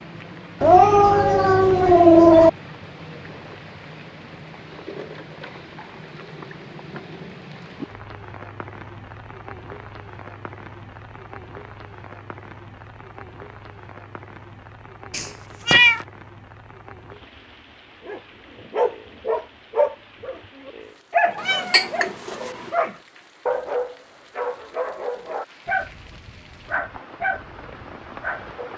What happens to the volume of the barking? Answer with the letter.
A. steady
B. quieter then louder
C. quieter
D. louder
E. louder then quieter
C.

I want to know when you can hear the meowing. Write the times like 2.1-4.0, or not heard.
0.6-2.5, 15.1-16.0, 21.4-22.7.